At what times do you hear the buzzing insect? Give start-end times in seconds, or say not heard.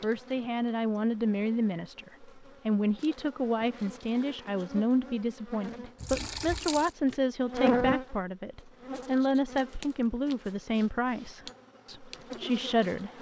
0.0-13.1.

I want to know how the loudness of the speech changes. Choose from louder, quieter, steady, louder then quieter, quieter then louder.
steady.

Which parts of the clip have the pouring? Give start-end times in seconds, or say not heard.
6.0-7.0.